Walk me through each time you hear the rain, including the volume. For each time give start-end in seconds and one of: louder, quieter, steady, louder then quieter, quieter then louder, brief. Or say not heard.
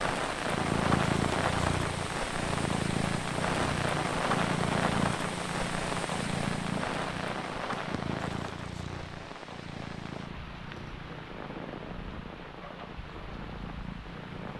0.0-14.5 quieter.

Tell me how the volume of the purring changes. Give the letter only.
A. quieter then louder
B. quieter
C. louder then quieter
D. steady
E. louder
B.